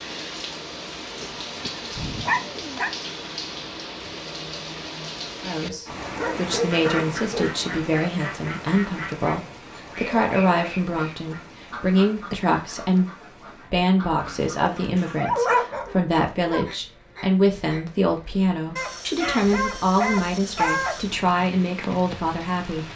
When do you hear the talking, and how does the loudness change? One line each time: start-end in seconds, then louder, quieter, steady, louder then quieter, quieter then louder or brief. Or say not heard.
5.4-22.9 steady.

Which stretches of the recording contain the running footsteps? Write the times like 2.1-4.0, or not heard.
not heard.